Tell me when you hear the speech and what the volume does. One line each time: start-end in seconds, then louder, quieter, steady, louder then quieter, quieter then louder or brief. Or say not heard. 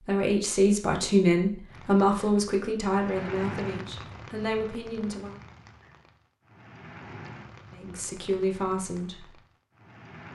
0.0-5.4 quieter
7.7-9.3 brief.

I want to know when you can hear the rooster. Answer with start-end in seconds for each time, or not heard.
not heard.